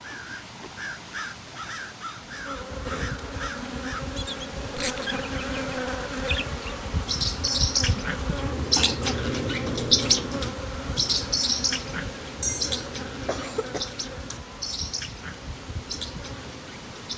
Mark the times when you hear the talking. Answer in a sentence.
You can't hear the talking here.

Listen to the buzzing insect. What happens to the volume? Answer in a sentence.
The loudness of the buzzing insect goes down.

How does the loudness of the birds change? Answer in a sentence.
The volume of the birds goes up, then down.